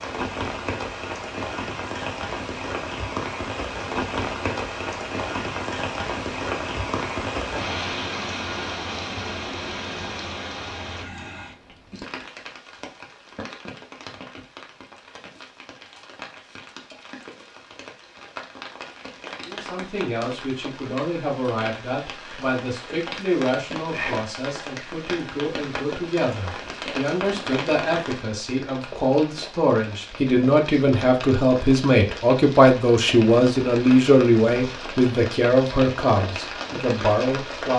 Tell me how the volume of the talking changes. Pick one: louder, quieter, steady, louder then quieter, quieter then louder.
louder.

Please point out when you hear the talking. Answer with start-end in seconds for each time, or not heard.
19.4-37.7.